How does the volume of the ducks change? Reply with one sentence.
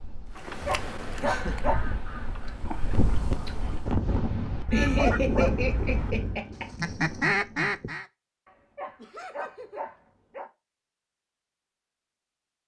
The loudness of the ducks goes down, then up.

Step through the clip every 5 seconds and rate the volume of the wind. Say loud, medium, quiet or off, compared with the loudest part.
loud, loud, off.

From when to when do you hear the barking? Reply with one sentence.
The barking can be heard from 0.3 to 1.9 s, from 4.7 to 6.5 s and from 8.4 to 10.5 s.